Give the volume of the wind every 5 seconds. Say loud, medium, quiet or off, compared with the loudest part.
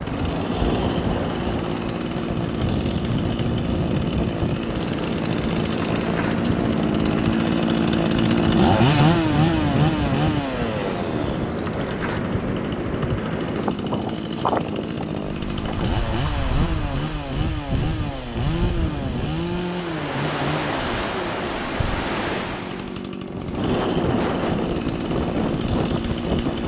loud, loud, loud, medium, loud, loud.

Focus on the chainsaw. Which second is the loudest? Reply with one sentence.
The volume of the chainsaw peaks at 9 seconds.